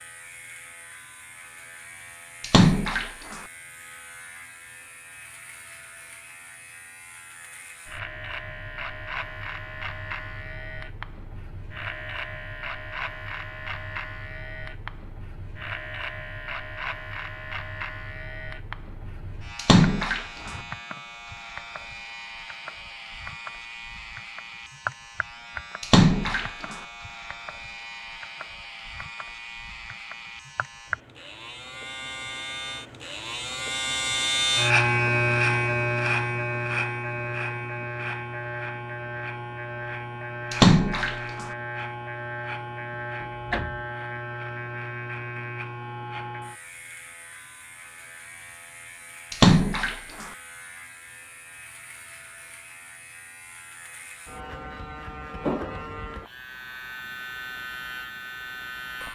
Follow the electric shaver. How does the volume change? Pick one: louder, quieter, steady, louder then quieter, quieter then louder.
louder then quieter.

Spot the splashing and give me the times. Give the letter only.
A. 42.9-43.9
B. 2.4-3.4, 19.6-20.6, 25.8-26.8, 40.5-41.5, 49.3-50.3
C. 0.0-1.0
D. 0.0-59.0
B.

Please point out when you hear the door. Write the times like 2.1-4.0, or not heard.
42.9-43.9.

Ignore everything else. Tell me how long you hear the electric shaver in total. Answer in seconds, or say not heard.
59 s.